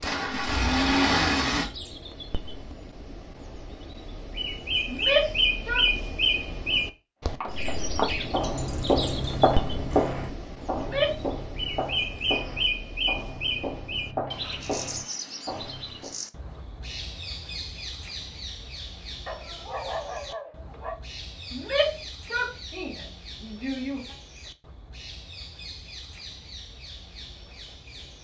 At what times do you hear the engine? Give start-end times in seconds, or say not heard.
0.0-1.6.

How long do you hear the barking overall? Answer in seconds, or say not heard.
2 s.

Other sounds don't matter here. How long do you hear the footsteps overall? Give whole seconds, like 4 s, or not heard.
9 s.